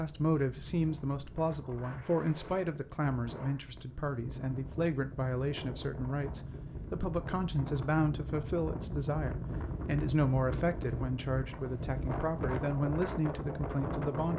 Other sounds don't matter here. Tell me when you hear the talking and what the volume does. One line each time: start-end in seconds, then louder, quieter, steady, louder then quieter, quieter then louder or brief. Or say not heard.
0.0-14.3 steady.